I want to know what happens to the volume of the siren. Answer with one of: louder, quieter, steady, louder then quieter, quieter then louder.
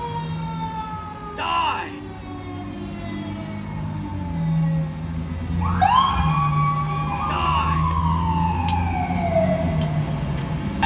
louder.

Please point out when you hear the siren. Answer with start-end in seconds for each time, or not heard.
0.0-10.8.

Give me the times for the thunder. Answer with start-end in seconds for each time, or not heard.
not heard.